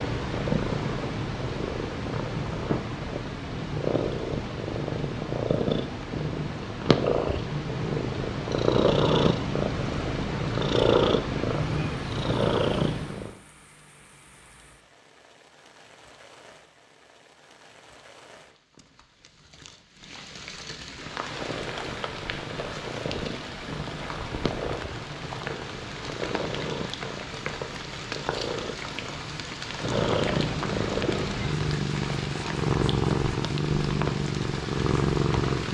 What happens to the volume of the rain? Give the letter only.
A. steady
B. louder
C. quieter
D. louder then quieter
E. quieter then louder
B.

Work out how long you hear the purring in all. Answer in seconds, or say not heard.
28 s.